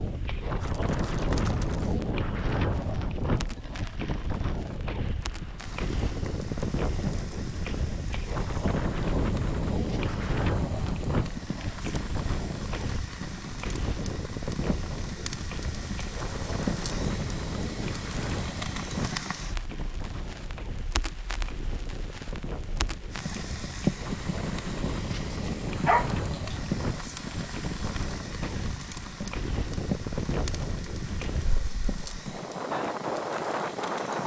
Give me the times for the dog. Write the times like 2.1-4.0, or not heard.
25.9-26.6.